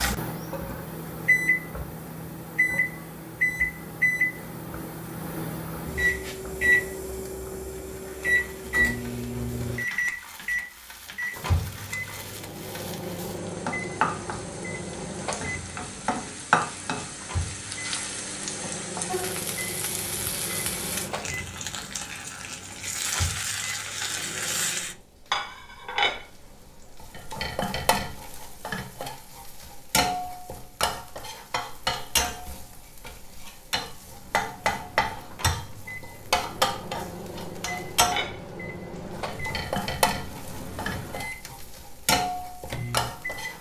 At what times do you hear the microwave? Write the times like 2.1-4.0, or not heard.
0.0-25.0, 34.0-43.5.